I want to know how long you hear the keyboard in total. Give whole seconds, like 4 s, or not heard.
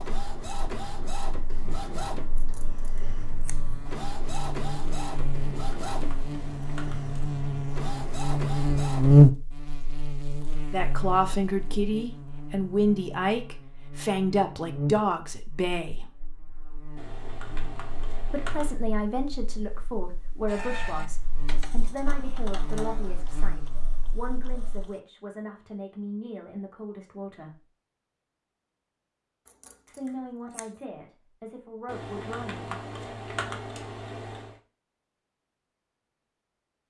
7 s.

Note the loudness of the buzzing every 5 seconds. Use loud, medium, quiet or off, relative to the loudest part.
quiet, loud, quiet, quiet, quiet, off, off, off.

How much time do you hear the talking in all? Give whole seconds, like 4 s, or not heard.
18 s.